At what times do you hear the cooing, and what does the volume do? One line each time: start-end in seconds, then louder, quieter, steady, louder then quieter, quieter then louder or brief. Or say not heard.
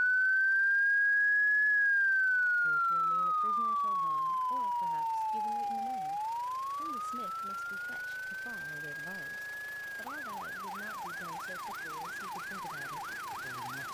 not heard.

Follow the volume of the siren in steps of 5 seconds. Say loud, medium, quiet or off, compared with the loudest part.
loud, medium, quiet.